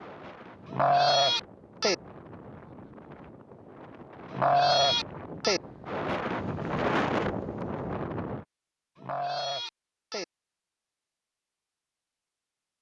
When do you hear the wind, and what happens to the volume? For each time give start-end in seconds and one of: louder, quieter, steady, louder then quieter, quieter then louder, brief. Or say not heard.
0.0-8.4 louder.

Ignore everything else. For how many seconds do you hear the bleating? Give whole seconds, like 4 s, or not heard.
4 s.